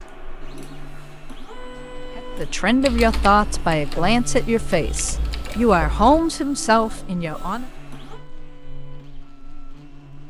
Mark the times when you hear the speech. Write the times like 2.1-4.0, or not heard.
2.1-7.7.